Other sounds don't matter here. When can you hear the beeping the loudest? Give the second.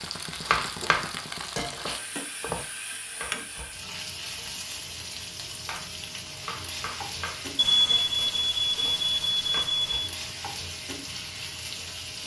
8 s.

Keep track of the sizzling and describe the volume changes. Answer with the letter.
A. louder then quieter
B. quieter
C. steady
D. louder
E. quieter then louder
C.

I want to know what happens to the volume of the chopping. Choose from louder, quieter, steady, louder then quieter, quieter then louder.
quieter.